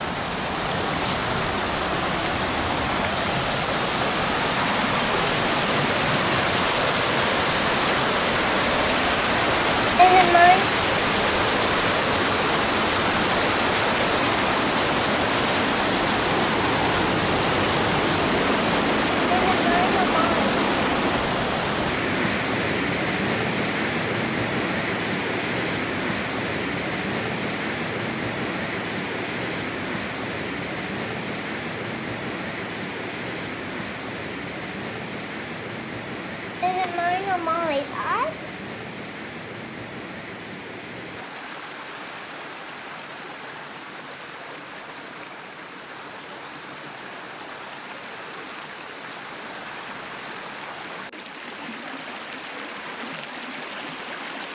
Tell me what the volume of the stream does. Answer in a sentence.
The loudness of the stream goes down.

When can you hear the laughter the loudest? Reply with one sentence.
The loudest moment of the laughter is at 10 seconds.